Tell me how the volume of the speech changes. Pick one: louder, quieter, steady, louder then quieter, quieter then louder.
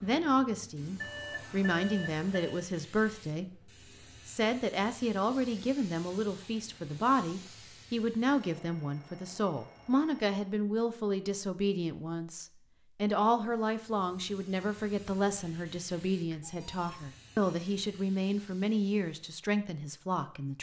steady.